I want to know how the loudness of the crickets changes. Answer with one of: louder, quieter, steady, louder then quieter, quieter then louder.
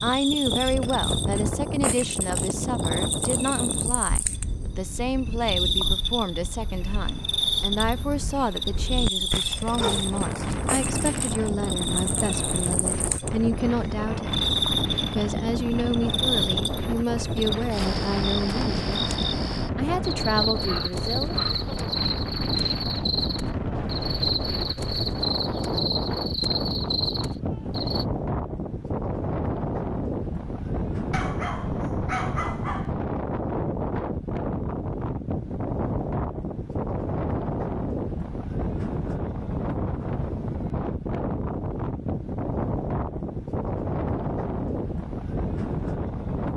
steady.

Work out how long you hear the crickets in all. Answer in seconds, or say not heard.
28 s.